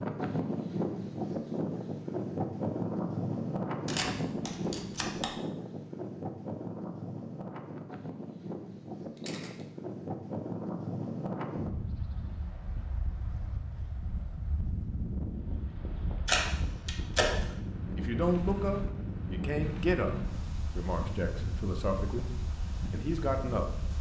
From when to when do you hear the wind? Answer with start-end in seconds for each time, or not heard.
0.0-23.9.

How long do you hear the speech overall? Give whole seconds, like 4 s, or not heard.
6 s.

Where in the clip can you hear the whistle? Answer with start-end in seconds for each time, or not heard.
not heard.